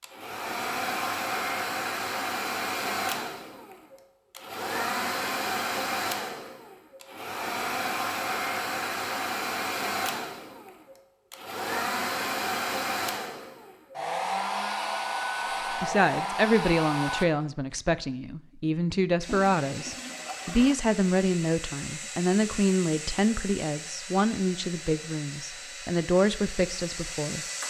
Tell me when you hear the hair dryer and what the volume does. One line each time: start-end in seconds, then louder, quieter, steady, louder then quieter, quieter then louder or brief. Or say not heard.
0.0-17.2 steady
19.2-27.6 steady.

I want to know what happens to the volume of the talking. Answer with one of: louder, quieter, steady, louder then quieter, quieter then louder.
steady.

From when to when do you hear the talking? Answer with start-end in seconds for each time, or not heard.
15.7-27.4.